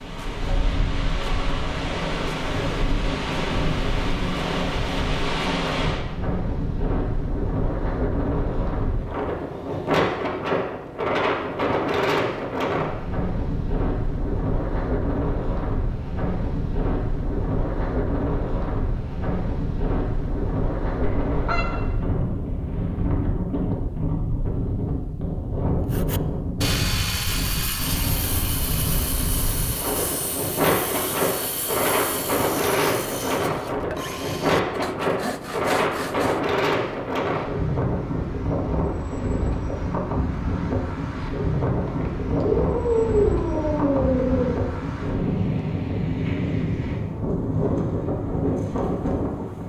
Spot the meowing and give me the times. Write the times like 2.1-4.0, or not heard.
21.0-21.6, 41.9-44.5.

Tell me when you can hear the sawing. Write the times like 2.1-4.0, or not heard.
25.9-36.4.